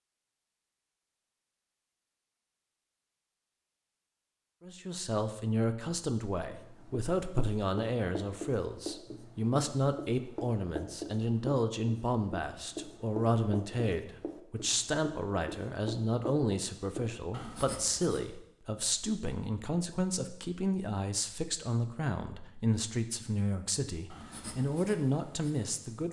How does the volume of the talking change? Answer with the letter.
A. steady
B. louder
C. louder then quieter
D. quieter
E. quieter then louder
A.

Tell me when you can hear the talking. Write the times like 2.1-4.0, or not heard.
4.6-26.0.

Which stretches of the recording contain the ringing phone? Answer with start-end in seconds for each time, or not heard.
not heard.